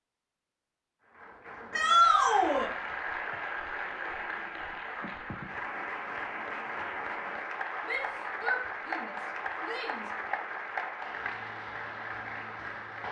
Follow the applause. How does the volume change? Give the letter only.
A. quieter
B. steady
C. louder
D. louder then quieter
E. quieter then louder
B.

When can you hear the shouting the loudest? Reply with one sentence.
The volume of the shouting peaks at 2 seconds.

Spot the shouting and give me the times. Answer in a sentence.
You can hear the shouting from 1.7 to 2.7 s and from 7.8 to 10.3 s.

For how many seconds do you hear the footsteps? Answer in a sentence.
You can't hear the footsteps here.